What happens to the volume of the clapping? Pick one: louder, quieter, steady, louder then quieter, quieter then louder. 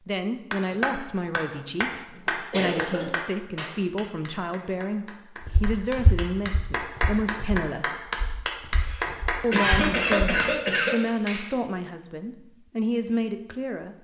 quieter then louder.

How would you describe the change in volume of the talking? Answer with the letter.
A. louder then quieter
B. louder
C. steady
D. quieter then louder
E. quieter
C.